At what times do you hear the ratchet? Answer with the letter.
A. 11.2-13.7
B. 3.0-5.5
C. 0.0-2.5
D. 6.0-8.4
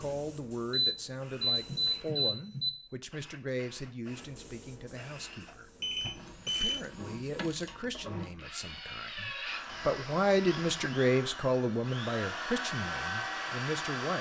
D.